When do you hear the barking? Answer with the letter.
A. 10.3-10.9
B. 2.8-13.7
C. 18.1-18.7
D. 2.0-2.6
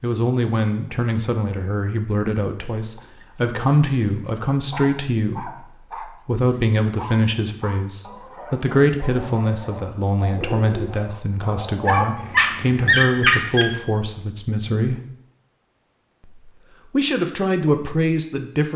B.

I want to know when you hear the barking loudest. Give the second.
13 s.